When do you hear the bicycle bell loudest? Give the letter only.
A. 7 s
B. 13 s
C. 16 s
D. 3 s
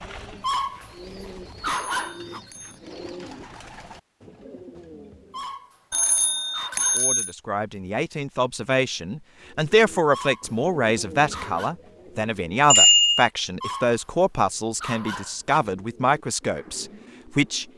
B.